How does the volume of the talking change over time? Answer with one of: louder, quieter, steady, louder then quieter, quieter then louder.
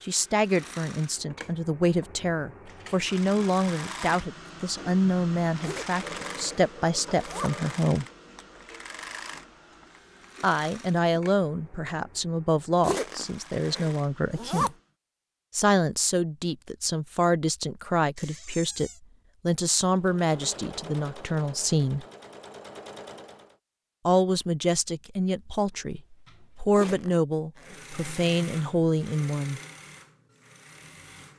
steady.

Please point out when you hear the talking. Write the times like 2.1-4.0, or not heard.
0.0-8.1, 10.4-14.8, 15.5-22.1, 24.1-29.6.